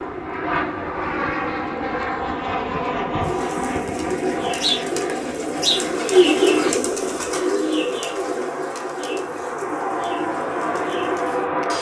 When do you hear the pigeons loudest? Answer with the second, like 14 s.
6 s.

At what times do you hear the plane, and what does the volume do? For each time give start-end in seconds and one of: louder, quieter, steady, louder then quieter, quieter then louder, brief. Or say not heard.
0.0-11.7 quieter then louder.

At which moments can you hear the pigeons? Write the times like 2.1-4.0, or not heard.
3.2-11.5.